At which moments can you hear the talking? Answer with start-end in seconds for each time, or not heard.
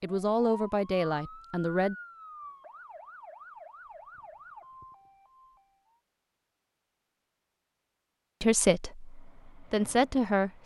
0.0-1.9, 8.4-10.6.